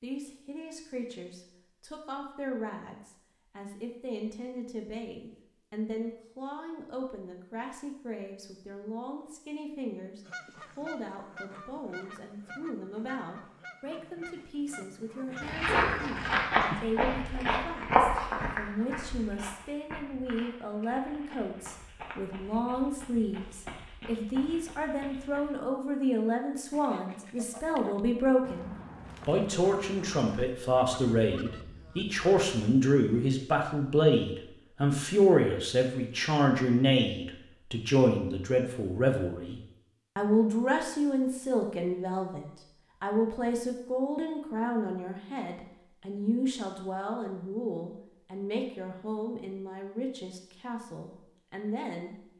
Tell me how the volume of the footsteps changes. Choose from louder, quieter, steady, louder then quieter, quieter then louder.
quieter.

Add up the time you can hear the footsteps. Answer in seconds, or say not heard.
10 s.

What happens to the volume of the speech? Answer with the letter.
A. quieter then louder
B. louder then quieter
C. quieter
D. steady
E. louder
B.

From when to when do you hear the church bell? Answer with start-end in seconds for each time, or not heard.
not heard.